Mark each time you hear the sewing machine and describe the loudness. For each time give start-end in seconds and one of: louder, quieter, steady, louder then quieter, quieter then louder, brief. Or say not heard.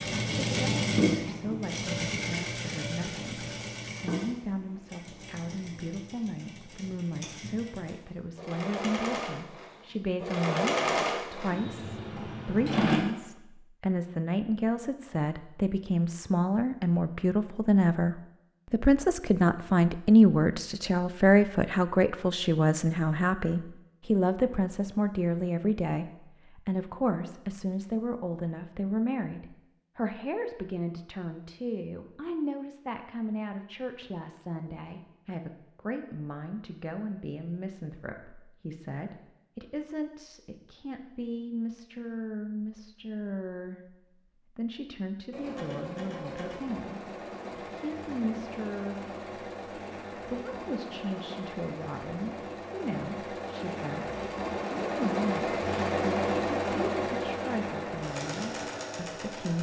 0.0-13.0 quieter then louder
45.3-59.5 louder.